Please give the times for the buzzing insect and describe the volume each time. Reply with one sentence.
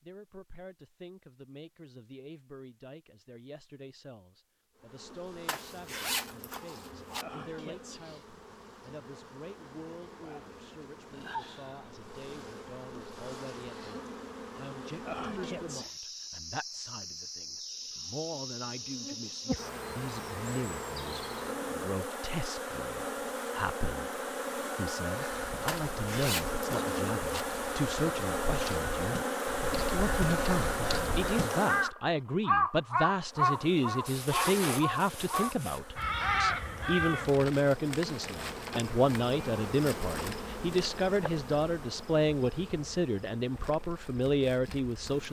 You can hear the buzzing insect from 4.8 to 31.9 s, getting louder; and from 33.2 to 45.2 s, getting louder then quieter.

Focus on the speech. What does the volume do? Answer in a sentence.
The volume of the speech goes up.